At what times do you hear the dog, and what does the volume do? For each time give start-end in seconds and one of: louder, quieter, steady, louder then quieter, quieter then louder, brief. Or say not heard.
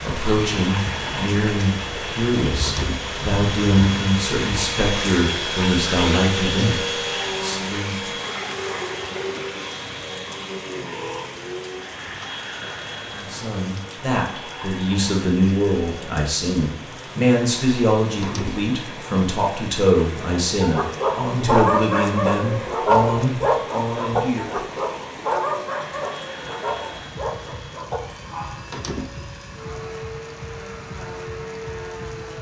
20.6-28.6 quieter.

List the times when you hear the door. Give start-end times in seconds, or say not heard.
2.6-3.1, 18.2-18.7, 28.7-29.4.